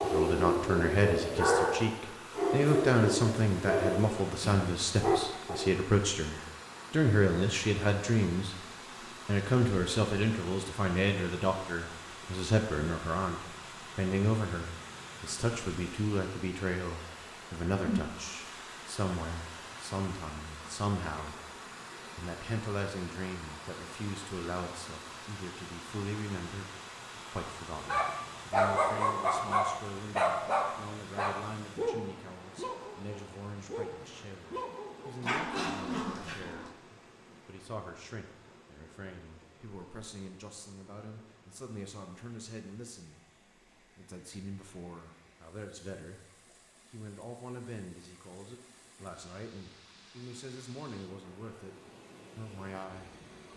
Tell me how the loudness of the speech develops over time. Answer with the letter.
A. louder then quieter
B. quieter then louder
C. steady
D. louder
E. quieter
E.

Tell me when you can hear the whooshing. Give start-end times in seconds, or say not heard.
17.7-18.2.